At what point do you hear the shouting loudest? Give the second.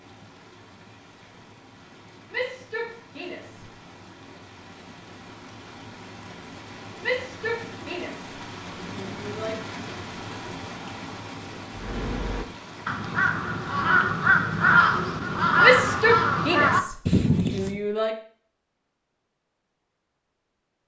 16 s.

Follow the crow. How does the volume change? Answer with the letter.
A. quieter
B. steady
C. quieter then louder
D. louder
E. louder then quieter
D.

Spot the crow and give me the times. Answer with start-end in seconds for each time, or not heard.
11.7-17.8.